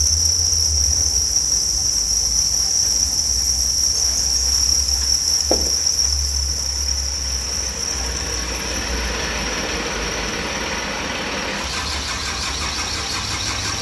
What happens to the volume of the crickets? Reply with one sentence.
The volume of the crickets goes down.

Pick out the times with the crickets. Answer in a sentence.
The crickets can be heard from 0.0 to 13.7 s.